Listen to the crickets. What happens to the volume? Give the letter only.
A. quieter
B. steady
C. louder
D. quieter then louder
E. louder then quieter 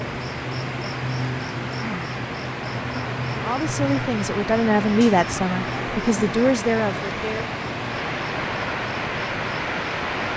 A.